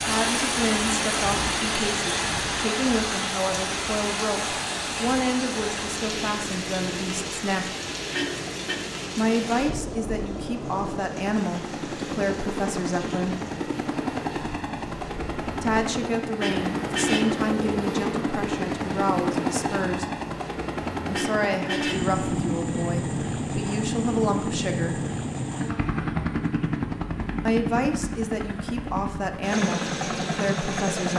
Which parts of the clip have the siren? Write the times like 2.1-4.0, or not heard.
not heard.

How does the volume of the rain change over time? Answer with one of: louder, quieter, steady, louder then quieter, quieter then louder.
quieter.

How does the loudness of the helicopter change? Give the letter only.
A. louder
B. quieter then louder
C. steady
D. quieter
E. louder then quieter
A.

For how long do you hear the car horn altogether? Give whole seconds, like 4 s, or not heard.
3 s.